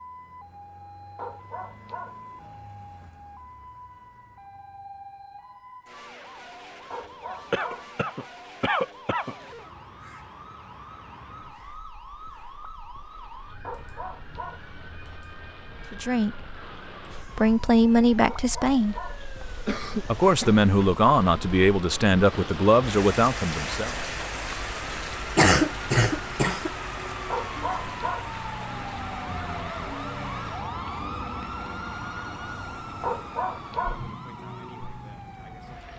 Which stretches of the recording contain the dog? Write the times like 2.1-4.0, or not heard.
1.1-2.2, 6.9-7.9, 13.6-14.7, 18.2-19.2, 27.3-28.3, 33.0-34.0.